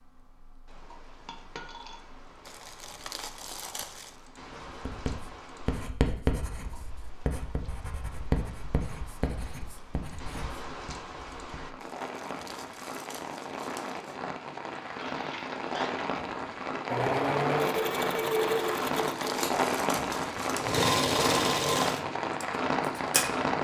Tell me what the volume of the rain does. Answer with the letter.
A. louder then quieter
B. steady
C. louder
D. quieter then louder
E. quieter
C.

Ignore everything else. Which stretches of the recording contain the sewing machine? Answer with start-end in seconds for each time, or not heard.
16.9-23.5.